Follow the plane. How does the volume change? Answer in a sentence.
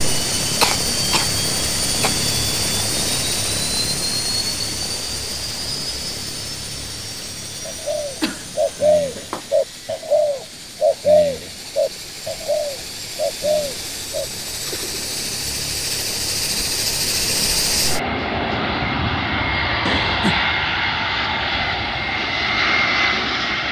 The volume of the plane goes down, then up.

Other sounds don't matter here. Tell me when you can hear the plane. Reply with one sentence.
The plane can be heard from 0.0 to 23.6 s.